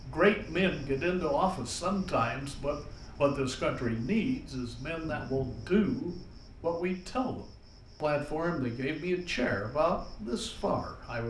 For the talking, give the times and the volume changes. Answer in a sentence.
The talking can be heard from 0.0 to 11.2 s, at a steady volume.